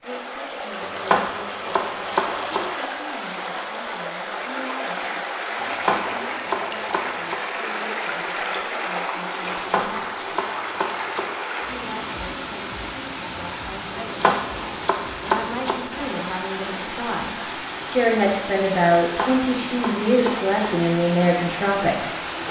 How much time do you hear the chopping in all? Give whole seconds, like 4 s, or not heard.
9 s.